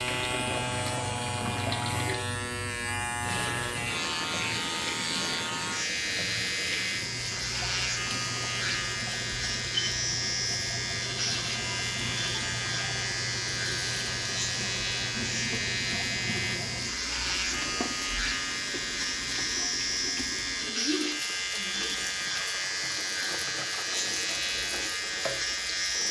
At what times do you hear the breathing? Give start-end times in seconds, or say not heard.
not heard.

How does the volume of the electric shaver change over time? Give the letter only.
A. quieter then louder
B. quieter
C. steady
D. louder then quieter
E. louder
C.